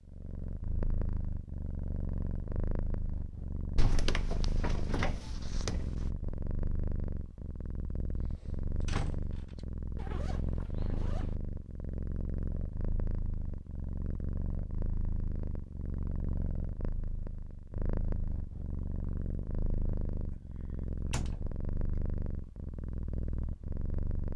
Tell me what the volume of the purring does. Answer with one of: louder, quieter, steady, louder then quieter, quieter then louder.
steady.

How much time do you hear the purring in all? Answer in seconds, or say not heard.
24 s.